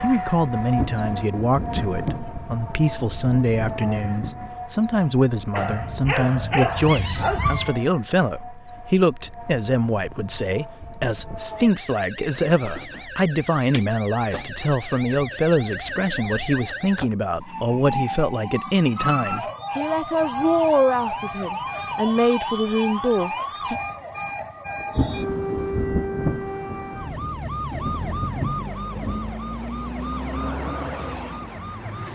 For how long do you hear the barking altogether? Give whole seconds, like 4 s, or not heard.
2 s.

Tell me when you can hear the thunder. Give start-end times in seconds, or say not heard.
0.6-4.6, 24.8-29.4.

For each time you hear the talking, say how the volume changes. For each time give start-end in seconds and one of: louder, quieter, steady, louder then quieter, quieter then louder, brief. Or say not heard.
0.0-23.8 steady.